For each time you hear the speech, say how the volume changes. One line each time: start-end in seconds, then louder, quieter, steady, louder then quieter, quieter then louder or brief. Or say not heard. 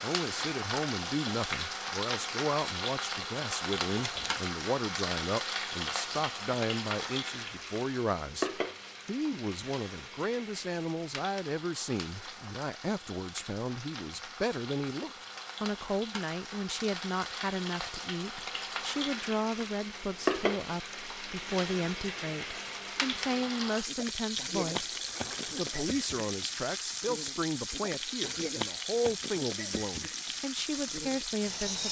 0.0-31.8 steady.